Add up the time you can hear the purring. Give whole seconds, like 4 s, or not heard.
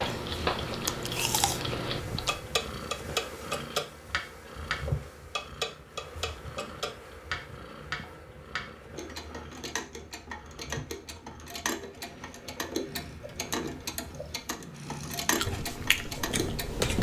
17 s.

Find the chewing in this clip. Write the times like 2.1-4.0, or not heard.
0.0-2.4, 15.3-16.9.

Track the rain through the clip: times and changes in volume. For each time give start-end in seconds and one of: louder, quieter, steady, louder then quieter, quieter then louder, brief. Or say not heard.
not heard.